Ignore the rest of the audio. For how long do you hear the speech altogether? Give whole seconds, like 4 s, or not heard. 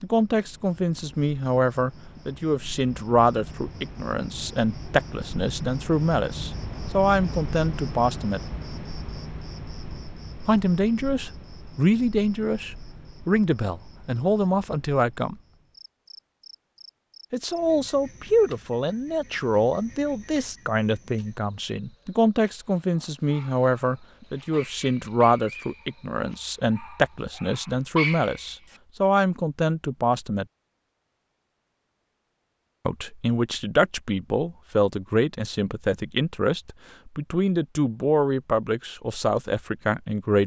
34 s.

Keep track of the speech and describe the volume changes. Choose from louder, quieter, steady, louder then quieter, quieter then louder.
steady.